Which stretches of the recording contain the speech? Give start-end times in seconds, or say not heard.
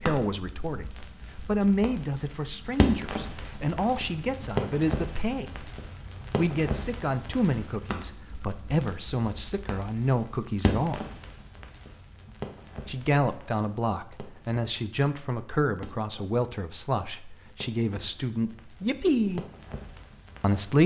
0.0-5.7, 6.3-11.1, 12.8-19.4, 20.4-20.8.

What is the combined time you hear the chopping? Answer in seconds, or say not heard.
not heard.